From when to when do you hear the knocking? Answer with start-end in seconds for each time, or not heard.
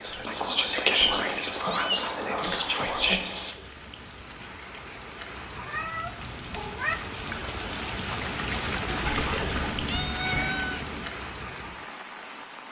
not heard.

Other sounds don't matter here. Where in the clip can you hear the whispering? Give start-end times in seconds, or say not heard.
0.0-3.5, 9.0-10.6.